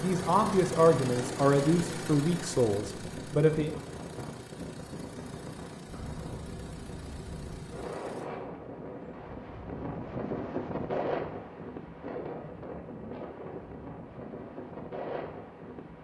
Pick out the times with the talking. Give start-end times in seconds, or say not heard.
0.0-3.7.